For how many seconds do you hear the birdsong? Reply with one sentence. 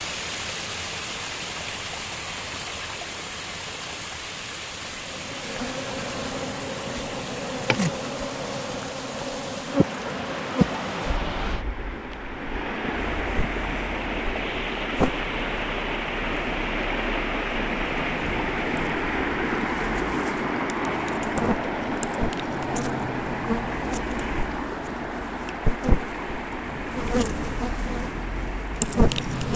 The birdsong can't be heard in this clip.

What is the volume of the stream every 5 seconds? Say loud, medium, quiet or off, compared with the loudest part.
medium, medium, loud, loud, loud, medium.